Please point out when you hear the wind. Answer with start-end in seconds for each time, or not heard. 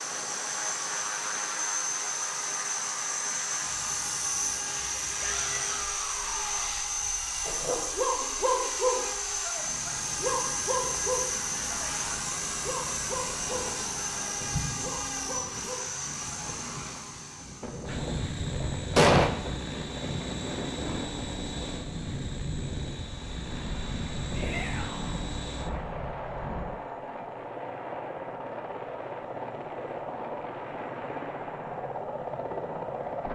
0.0-26.6.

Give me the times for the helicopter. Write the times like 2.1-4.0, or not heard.
0.0-33.3.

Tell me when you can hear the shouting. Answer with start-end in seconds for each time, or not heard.
5.2-6.8, 24.4-25.2.